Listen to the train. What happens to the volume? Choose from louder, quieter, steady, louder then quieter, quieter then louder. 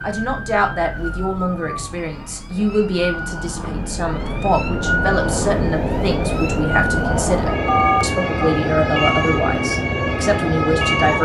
louder.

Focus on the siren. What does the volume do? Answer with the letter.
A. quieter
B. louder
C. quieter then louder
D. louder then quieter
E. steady
B.